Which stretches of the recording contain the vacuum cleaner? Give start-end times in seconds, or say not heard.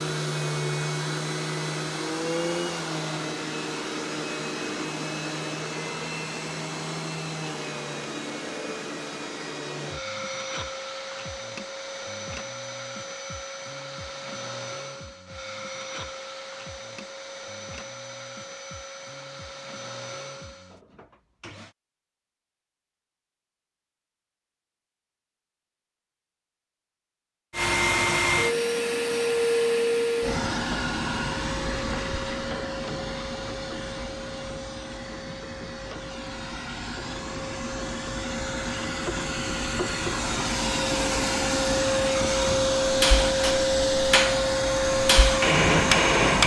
0.0-21.8, 27.5-46.4.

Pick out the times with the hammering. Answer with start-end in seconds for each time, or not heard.
42.9-46.4.